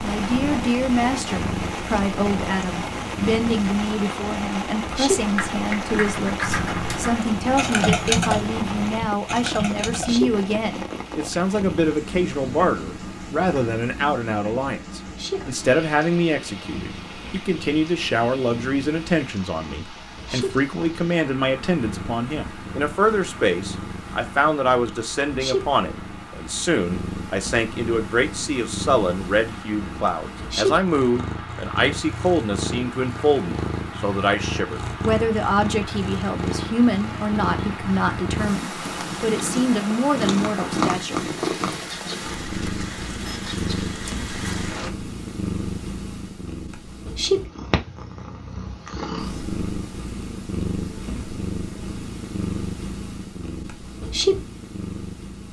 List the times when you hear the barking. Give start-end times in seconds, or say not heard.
not heard.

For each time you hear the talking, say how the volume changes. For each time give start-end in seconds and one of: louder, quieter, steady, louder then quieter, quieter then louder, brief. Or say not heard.
0.0-41.3 steady.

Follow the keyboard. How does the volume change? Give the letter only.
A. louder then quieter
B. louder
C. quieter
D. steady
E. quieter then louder
A.